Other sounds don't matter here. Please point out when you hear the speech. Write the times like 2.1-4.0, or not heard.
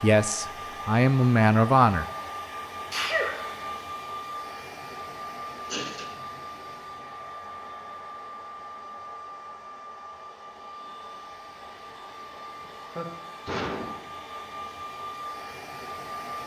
0.0-2.0.